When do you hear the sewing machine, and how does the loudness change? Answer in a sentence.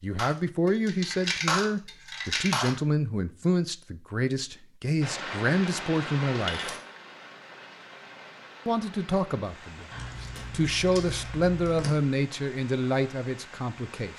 The sewing machine can't be heard in this clip.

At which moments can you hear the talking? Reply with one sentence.
You can hear the talking from 0.0 to 6.7 s and from 8.7 to 14.1 s.